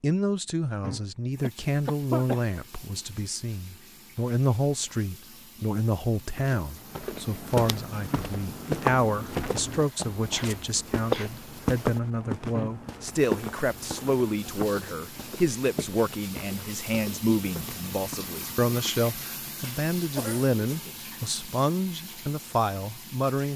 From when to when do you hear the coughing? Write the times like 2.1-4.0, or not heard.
1.4-2.4, 9.2-11.4, 20.1-20.9.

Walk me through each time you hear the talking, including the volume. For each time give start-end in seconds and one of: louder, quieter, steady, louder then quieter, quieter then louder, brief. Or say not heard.
0.0-23.5 steady.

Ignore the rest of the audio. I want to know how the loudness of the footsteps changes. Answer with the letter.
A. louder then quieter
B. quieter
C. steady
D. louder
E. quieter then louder
B.